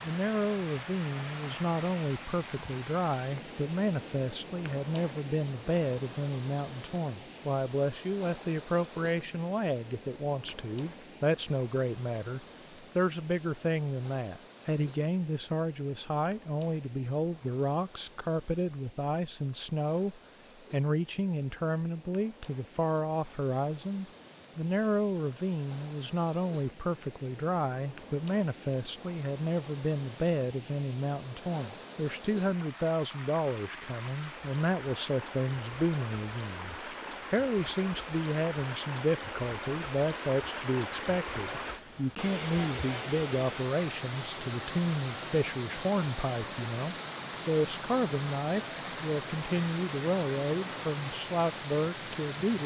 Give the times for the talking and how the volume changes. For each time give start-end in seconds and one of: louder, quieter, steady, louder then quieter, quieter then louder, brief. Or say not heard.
0.0-52.6 steady.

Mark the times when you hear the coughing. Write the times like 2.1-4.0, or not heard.
not heard.